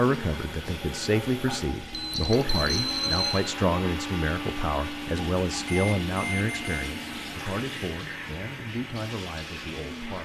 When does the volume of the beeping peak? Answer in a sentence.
The volume of the beeping peaks at 3 seconds.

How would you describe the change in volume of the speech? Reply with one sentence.
The loudness of the speech goes down.